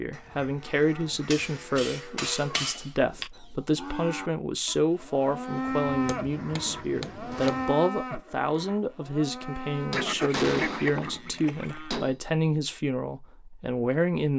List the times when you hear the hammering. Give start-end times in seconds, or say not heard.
1.3-3.3, 6.0-7.5, 9.8-12.2.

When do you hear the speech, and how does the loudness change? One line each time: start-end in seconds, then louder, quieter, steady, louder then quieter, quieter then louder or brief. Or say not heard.
0.0-14.3 steady.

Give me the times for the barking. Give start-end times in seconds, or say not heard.
not heard.